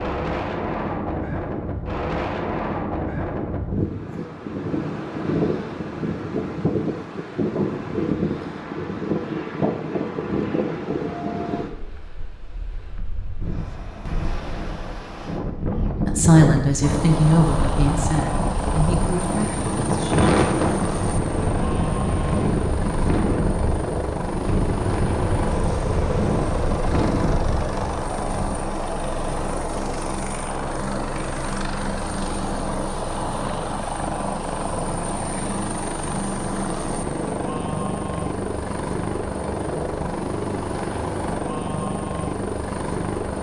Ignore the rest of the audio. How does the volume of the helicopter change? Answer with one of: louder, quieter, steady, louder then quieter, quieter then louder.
steady.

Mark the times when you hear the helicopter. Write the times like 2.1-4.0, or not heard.
16.8-43.3.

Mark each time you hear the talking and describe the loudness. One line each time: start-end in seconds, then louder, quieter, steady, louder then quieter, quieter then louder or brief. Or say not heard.
16.1-20.3 quieter.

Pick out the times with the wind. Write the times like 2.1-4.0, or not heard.
0.0-28.6.